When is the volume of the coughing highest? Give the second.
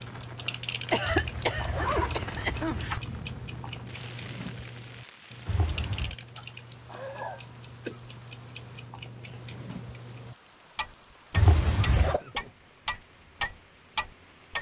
1 s.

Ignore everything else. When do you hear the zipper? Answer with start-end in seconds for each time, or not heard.
1.0-3.0, 5.5-6.2, 11.3-12.2.